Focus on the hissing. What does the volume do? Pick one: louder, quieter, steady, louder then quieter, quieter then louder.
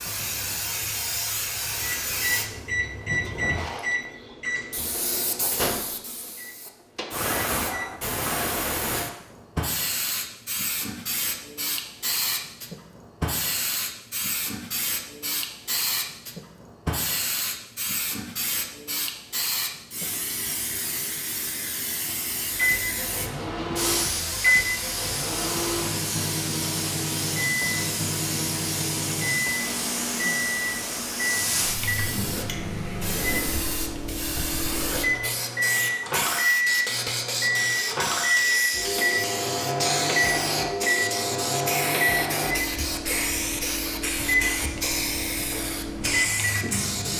steady.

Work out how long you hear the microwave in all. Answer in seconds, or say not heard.
31 s.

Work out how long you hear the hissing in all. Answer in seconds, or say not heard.
47 s.